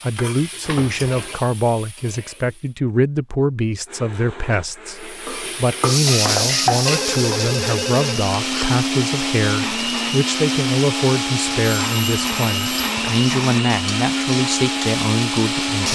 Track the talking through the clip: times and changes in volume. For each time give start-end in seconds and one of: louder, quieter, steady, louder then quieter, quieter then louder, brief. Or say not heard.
0.0-15.8 steady.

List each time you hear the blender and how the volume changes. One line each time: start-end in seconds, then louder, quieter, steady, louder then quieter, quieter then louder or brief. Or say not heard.
3.9-15.8 louder.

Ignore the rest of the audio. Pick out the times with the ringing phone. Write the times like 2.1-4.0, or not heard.
0.6-1.4, 6.8-8.7, 11.8-12.9.